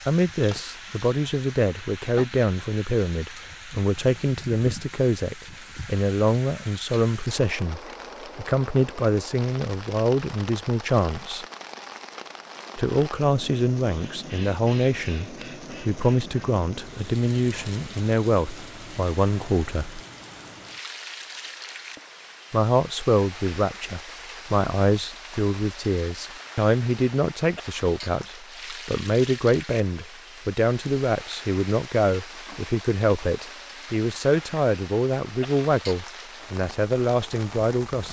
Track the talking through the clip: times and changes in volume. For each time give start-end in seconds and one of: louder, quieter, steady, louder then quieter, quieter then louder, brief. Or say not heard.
0.1-11.4 steady
12.8-20.0 steady
22.5-38.0 steady.